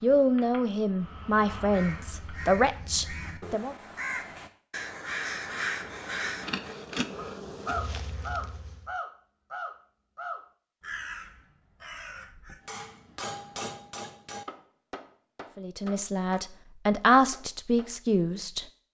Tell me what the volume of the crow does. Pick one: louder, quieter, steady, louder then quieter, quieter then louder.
louder then quieter.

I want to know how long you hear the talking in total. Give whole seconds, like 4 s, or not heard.
7 s.